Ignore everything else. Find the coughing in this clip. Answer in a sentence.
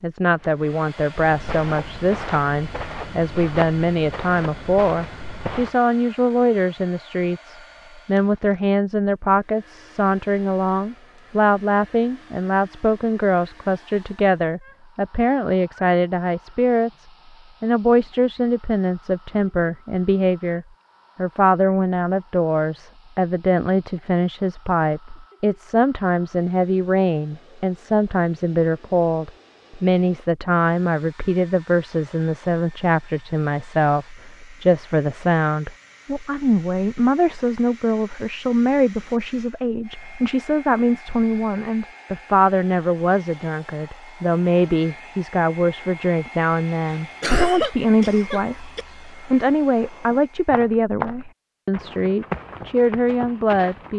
The coughing can be heard from 46.9 to 48.9 s.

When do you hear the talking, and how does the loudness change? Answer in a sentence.
The talking can be heard from 0.0 to 53.9 s, at a steady volume.